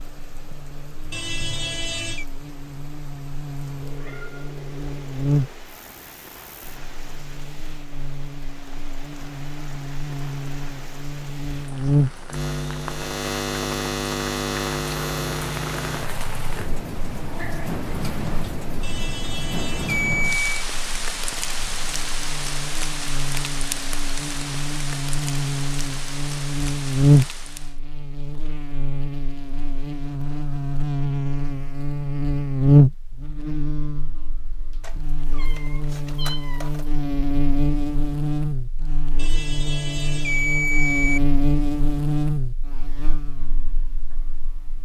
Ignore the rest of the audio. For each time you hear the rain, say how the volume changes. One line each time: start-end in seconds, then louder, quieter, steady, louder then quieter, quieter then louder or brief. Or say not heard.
0.0-27.8 louder.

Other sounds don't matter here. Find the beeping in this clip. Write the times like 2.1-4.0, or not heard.
1.1-2.2, 18.8-20.6, 39.1-41.2.